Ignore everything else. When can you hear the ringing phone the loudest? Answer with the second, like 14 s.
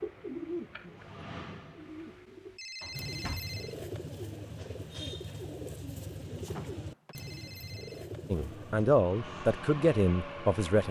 3 s.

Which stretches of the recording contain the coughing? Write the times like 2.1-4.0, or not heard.
not heard.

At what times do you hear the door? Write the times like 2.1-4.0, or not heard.
2.8-3.5, 6.5-7.2.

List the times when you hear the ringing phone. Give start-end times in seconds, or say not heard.
2.5-3.8, 7.1-8.1.